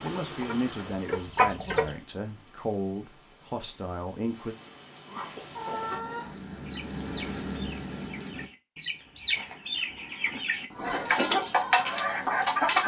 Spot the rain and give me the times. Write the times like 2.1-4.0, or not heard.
0.0-8.5.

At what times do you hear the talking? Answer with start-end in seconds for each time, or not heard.
0.0-4.5.